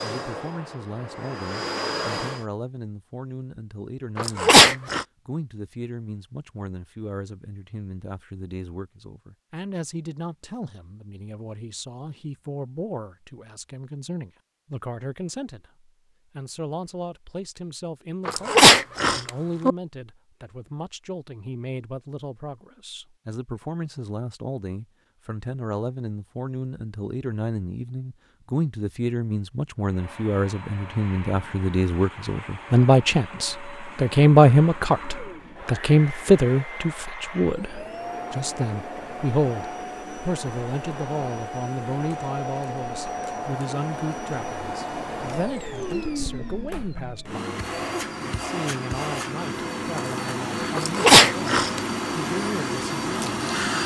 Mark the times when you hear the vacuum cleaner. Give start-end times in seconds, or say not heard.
0.0-2.5, 29.9-53.8.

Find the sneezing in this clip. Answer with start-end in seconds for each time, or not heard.
4.2-5.0, 18.2-19.8, 50.8-51.8.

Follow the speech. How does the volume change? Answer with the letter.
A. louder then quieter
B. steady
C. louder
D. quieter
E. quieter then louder
A.